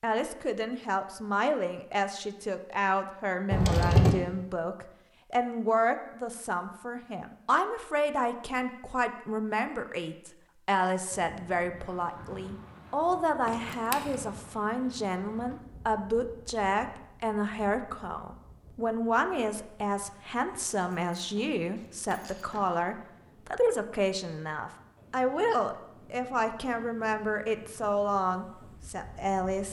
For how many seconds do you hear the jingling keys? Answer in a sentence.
You can hear the jingling keys for 3 seconds altogether.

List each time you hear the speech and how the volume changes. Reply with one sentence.
The speech can be heard from 0.0 to 29.6 s, at a steady volume.